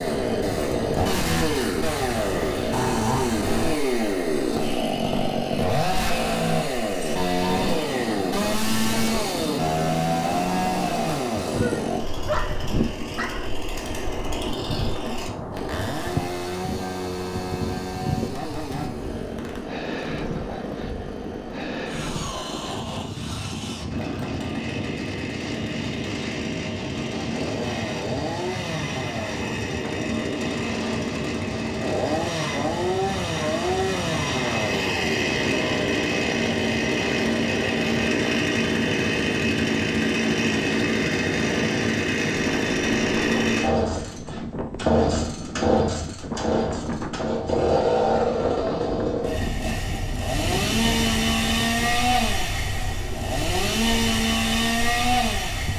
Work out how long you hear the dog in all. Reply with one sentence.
You can hear the dog for 2 seconds altogether.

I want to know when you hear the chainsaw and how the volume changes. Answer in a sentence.
The chainsaw can be heard from 0.0 to 55.7 s, getting quieter then louder.